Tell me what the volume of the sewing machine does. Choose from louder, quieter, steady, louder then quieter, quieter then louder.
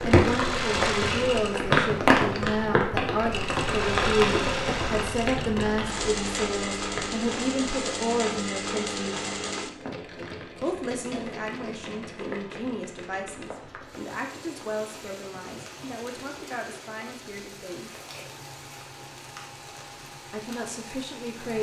quieter.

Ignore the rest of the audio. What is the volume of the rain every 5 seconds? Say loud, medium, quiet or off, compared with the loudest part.
loud, medium, quiet, quiet, quiet.